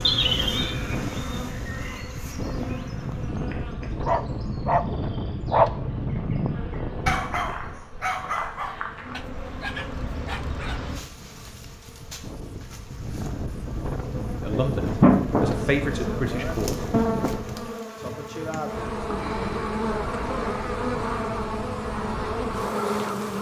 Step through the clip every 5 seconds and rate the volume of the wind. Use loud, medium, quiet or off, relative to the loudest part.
loud, loud, loud, loud, off.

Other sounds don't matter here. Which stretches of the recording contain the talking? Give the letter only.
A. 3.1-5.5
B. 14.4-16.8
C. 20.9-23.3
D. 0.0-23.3
B.